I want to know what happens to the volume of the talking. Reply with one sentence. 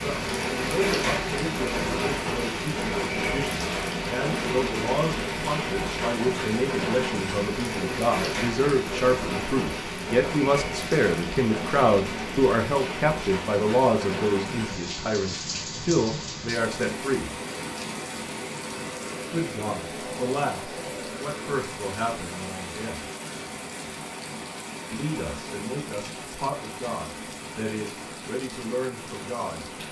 The volume of the talking goes up, then down.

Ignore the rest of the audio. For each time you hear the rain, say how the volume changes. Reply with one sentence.
You can hear the rain from 0.0 to 29.8 s, getting quieter.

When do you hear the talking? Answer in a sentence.
The talking can be heard from 0.0 to 17.3 s, from 19.3 to 23.1 s and from 24.9 to 29.6 s.